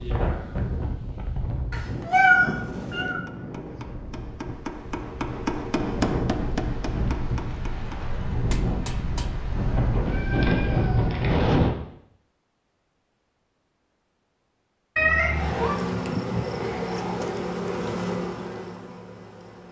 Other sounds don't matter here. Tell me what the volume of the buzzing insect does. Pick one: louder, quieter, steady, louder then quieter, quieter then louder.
quieter.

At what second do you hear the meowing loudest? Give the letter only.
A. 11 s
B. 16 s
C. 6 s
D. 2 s
D.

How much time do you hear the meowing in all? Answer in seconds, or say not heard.
4 s.